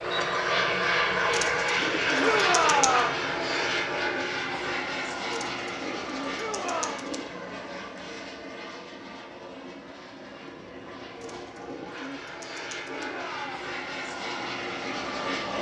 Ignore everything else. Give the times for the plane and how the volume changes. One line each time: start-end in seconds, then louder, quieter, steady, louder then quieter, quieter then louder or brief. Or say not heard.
0.0-15.5 quieter then louder.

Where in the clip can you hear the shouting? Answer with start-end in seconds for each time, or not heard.
2.1-3.1, 6.3-7.0, 12.9-13.7.